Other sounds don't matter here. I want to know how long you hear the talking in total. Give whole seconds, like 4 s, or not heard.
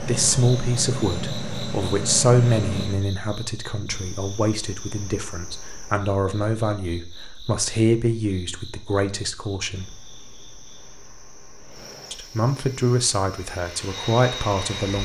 13 s.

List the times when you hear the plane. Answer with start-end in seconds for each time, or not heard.
0.0-3.0, 11.6-15.0.